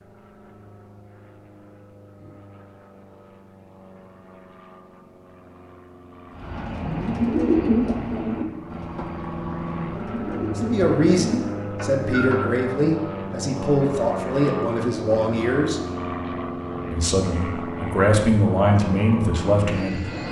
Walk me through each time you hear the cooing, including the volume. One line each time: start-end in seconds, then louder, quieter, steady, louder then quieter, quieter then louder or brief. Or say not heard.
6.3-12.6 quieter then louder.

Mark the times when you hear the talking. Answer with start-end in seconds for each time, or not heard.
10.6-15.8, 16.9-20.2.